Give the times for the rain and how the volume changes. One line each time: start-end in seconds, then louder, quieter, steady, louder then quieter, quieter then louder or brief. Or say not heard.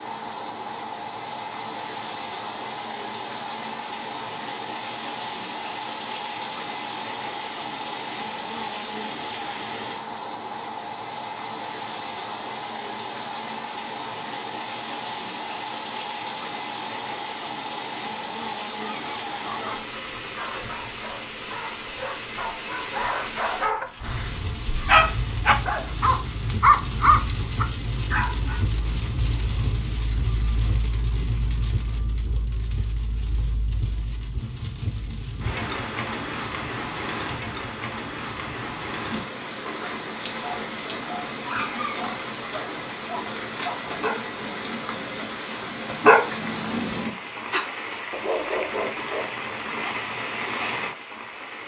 0.0-51.6 steady.